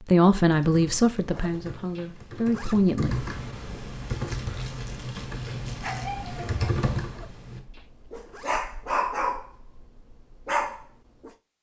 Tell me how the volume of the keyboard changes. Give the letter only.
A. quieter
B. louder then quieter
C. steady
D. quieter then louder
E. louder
E.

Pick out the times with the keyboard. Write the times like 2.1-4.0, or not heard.
0.5-7.6.